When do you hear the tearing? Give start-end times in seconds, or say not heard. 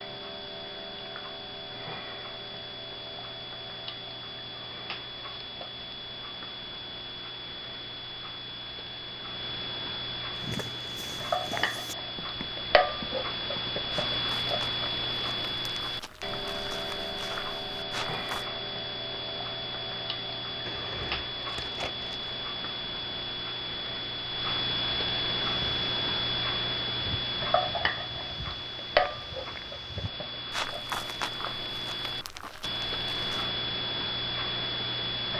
20.6-22.4.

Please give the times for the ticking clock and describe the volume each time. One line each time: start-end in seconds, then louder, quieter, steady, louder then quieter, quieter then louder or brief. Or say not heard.
0.0-35.3 louder.